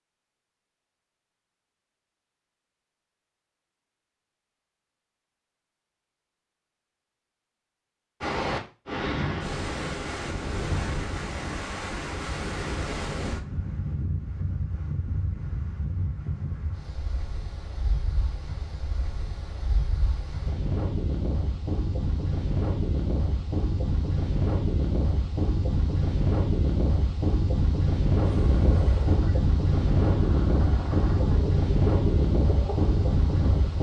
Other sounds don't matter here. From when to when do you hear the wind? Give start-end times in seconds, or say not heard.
8.2-33.7.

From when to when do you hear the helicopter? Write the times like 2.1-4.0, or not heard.
28.2-33.7.